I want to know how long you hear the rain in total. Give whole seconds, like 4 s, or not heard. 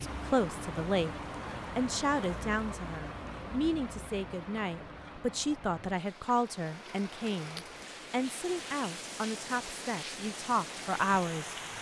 12 s.